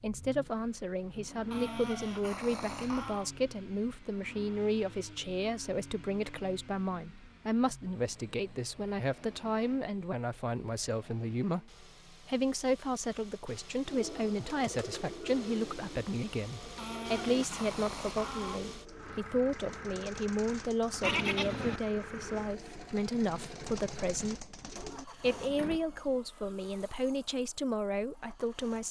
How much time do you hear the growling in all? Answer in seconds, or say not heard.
4 s.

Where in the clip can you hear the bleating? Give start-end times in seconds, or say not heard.
21.0-22.2.